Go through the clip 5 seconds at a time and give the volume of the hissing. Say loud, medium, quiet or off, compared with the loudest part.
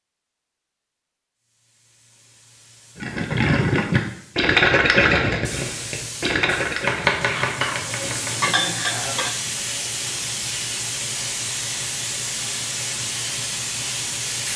quiet, loud, loud.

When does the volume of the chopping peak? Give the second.
7 s.